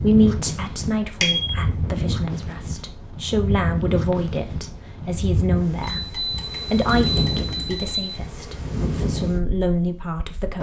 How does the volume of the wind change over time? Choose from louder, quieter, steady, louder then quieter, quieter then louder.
steady.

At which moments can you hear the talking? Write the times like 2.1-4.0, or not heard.
0.0-10.5.